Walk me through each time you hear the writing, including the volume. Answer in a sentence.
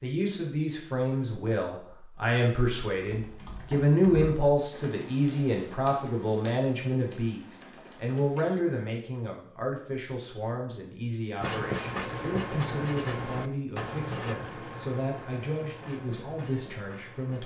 You can hear the writing from 11.4 to 17.4 s, getting quieter.